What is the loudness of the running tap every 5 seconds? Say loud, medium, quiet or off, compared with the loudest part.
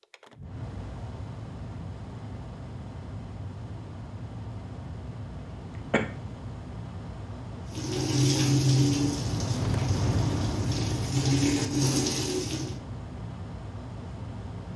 off, loud, loud.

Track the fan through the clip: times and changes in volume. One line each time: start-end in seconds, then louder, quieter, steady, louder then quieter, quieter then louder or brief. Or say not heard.
0.0-14.7 louder then quieter.